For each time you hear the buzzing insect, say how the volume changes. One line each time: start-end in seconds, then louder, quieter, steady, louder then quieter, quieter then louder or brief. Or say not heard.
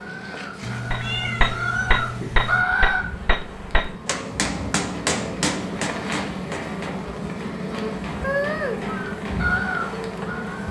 0.0-10.6 louder.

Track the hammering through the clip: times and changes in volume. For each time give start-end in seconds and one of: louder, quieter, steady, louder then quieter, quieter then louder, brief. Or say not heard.
0.9-10.4 quieter.